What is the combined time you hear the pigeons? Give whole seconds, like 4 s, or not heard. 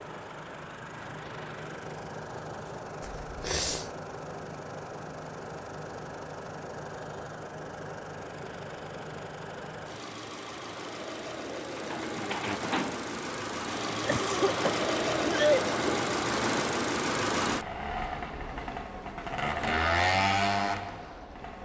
2 s.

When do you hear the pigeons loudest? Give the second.
13 s.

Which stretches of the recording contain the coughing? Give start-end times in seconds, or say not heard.
3.0-3.9, 14.0-15.8.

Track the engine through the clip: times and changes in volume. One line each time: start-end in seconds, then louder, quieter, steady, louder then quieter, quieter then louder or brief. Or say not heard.
0.0-21.6 louder.